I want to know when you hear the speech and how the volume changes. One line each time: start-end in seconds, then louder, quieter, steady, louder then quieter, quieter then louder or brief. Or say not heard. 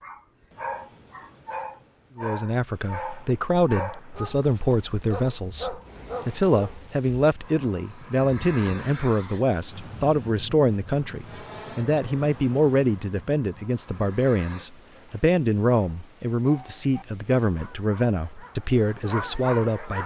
2.1-20.0 steady.